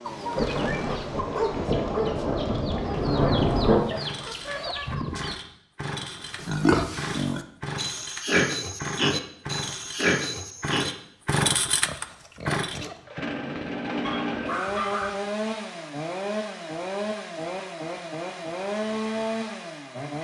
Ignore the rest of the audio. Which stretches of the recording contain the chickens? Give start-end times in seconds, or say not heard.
0.0-5.3.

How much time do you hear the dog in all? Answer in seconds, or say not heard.
2 s.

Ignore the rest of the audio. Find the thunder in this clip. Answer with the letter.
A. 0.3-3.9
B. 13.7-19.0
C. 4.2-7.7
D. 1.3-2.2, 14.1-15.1
A.